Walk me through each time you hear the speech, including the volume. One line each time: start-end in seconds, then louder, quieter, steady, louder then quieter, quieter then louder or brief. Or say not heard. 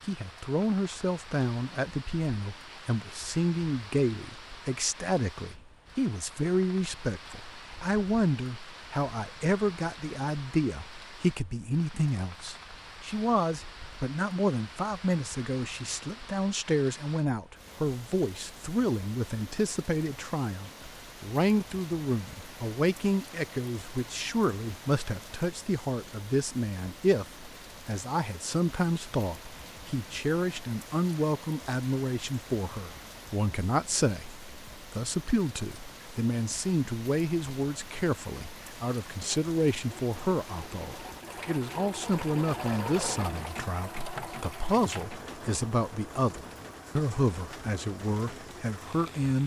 0.1-49.4 steady.